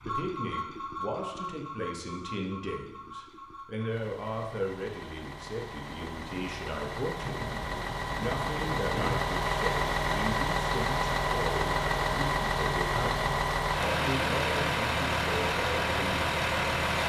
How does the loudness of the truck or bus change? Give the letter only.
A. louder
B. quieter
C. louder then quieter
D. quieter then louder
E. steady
A.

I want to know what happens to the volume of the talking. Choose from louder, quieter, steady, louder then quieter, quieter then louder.
steady.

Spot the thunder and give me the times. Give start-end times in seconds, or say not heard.
7.2-9.2.